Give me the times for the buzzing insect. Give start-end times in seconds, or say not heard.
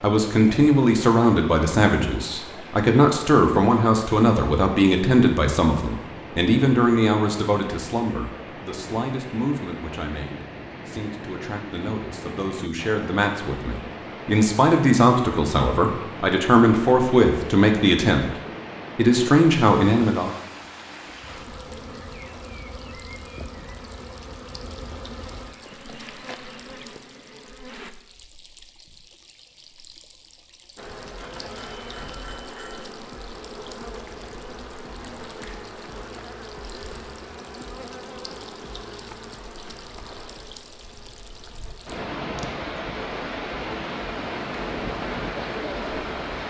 21.2-27.9, 30.8-46.3.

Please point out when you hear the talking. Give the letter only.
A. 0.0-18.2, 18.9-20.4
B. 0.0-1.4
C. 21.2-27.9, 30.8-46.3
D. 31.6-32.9
A.